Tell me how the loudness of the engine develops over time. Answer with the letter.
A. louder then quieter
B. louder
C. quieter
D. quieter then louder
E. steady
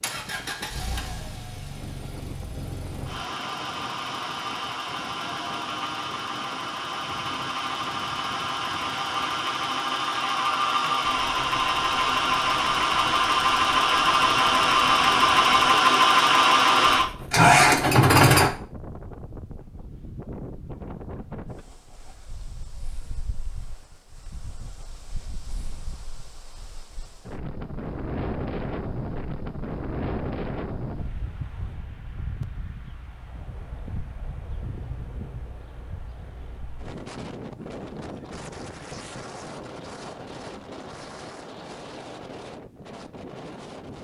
B.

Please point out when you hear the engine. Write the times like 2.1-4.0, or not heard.
0.0-18.5.